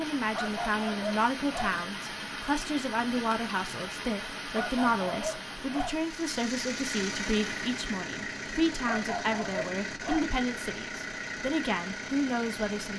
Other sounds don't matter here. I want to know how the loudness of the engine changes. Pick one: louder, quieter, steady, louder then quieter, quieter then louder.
steady.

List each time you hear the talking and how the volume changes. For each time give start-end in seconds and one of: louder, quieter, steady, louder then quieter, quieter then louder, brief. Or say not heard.
0.0-12.9 steady.